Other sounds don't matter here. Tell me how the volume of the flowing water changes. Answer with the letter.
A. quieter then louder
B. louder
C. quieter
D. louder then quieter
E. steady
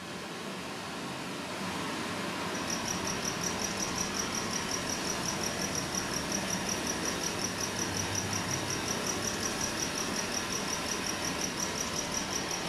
E.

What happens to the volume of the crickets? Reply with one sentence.
The loudness of the crickets stays about the same.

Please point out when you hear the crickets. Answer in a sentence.
You can hear the crickets from 2.5 to 12.6 s.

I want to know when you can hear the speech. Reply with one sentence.
You can't hear the speech here.